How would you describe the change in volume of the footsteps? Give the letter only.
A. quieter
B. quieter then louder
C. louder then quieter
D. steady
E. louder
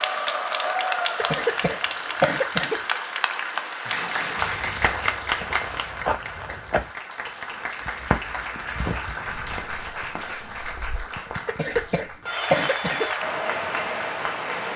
A.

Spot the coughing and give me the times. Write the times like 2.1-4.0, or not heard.
1.1-2.8, 11.4-13.1.